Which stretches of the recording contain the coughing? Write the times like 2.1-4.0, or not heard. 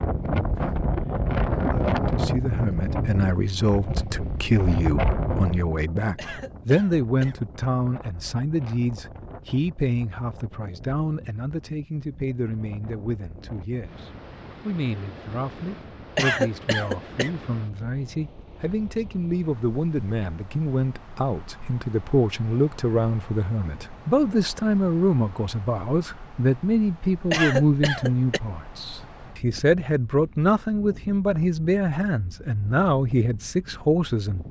6.2-7.3, 16.1-17.3, 27.3-28.4.